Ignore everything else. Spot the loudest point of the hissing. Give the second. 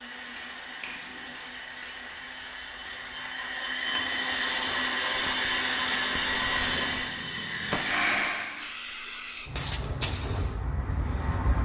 10 s.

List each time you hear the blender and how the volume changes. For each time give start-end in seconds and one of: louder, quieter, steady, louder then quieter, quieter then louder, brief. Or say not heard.
0.0-8.7 louder.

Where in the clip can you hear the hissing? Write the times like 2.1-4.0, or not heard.
0.0-11.6.